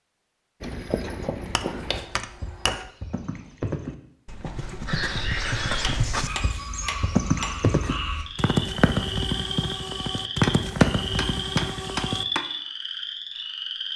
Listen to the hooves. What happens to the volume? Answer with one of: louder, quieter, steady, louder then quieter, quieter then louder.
louder.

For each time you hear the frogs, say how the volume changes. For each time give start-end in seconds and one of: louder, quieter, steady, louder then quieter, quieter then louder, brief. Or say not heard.
4.8-13.9 steady.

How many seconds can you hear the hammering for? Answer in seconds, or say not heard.
5 s.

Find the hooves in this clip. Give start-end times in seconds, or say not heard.
0.6-12.2.